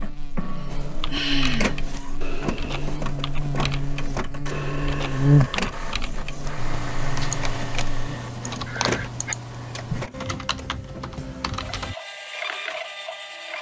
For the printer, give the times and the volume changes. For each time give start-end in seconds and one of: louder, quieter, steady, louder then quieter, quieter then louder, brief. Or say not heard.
0.0-13.5 steady.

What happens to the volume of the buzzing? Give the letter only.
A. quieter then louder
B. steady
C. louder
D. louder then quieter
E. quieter
D.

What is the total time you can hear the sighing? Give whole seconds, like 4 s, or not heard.
2 s.